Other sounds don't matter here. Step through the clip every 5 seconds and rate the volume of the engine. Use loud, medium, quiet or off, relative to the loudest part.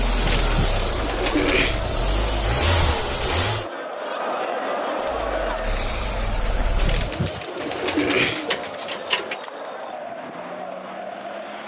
loud, medium, off.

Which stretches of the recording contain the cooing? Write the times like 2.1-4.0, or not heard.
0.1-1.9, 6.8-9.4.